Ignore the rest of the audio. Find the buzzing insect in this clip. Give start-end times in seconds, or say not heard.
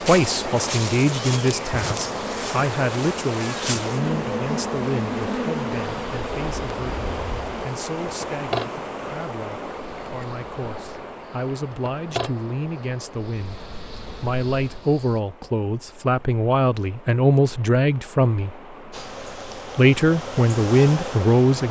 0.0-15.2, 18.9-21.6.